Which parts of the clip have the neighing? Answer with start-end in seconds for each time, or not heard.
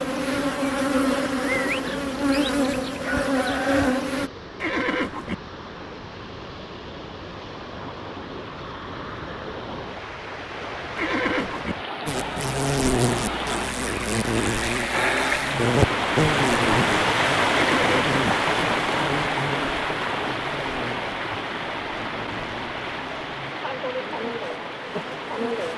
4.6-5.3, 10.9-11.8, 17.6-18.2.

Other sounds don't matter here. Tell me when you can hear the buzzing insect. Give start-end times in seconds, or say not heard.
0.0-4.3, 12.1-25.7.